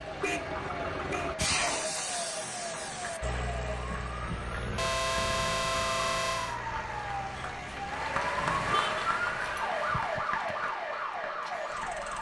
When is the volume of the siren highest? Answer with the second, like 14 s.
10 s.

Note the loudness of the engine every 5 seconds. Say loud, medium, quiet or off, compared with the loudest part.
loud, medium, medium.